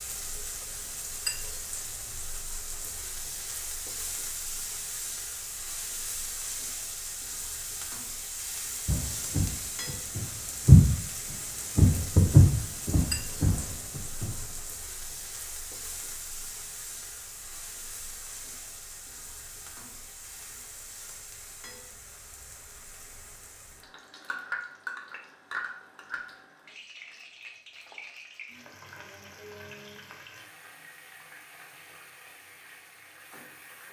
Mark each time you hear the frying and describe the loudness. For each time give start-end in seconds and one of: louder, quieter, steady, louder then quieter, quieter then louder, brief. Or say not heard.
0.0-33.8 quieter.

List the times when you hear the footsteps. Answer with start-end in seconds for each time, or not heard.
8.8-14.3.